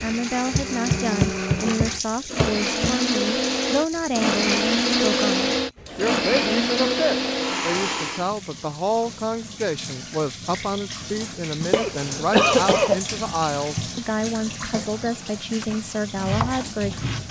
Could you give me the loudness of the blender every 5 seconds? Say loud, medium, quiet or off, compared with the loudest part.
loud, loud, off, off.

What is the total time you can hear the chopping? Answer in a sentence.
You can hear the chopping for 5 seconds altogether.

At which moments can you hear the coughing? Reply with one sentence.
You can hear the coughing from 11.7 to 13.0 s.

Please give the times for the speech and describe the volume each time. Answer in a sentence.
You can hear the speech from 0.0 to 17.1 s, at a steady volume.